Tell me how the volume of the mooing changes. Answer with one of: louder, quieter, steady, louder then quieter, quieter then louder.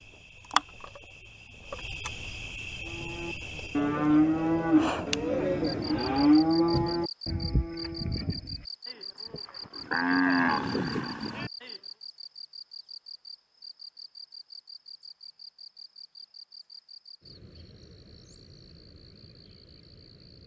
quieter then louder.